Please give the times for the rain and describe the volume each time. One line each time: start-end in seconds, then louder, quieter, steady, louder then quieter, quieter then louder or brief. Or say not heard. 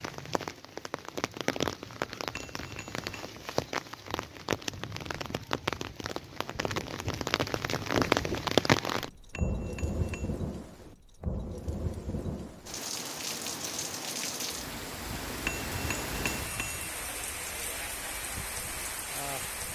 0.0-19.6 louder then quieter.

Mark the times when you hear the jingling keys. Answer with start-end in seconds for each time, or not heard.
not heard.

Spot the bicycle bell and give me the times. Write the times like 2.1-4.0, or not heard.
2.3-3.2, 9.3-10.3, 15.4-16.9.